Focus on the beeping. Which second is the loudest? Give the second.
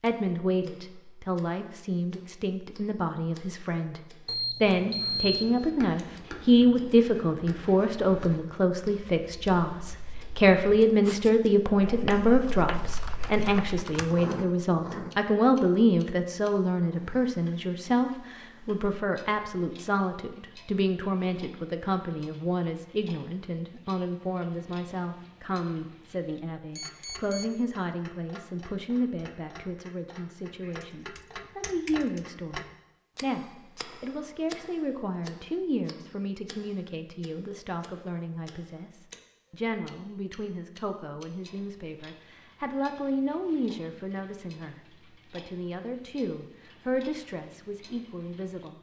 5 s.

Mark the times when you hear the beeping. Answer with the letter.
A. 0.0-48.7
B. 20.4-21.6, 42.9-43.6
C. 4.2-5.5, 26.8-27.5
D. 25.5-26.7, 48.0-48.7
C.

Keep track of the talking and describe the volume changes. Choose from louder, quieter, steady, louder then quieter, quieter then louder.
quieter.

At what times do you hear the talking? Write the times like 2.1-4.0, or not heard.
0.0-48.7.